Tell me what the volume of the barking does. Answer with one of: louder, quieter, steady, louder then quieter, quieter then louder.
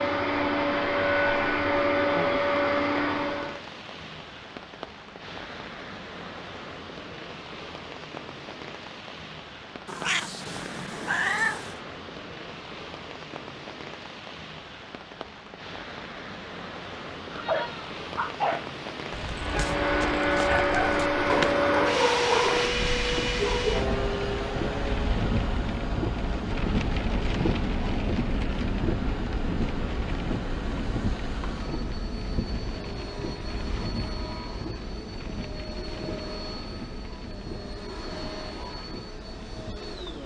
quieter then louder.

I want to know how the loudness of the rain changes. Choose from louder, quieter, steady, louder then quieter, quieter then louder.
louder then quieter.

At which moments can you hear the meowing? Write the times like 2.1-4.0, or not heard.
9.8-11.8.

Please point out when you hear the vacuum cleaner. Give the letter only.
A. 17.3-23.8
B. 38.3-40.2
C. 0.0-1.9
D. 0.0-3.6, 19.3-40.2
D.